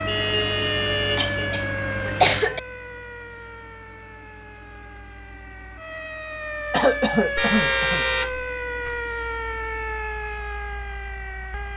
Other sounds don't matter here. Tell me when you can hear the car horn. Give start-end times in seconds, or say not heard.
0.1-1.6, 7.3-9.0.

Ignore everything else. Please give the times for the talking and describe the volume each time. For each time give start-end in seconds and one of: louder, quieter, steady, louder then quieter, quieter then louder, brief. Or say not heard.
not heard.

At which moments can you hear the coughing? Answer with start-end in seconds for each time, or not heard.
0.7-2.6, 6.7-8.1.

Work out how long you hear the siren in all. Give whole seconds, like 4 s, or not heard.
12 s.